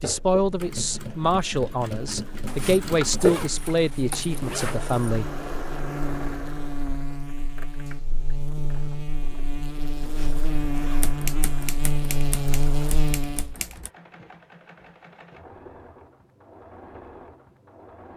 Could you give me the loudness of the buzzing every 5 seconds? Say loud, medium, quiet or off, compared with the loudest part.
quiet, medium, loud, off.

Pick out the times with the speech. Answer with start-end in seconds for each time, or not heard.
0.0-5.3.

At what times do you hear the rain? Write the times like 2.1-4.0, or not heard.
not heard.